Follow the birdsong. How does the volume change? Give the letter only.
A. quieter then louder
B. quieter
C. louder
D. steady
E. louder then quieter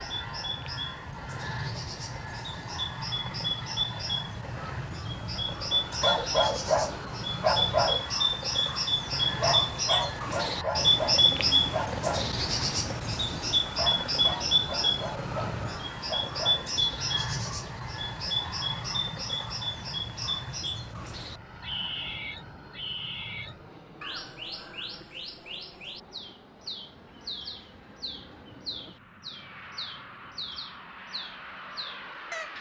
E.